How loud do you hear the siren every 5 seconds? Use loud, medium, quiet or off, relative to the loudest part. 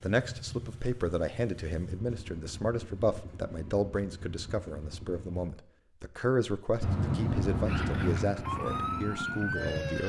off, loud.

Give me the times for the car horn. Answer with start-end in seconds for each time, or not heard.
6.8-8.3.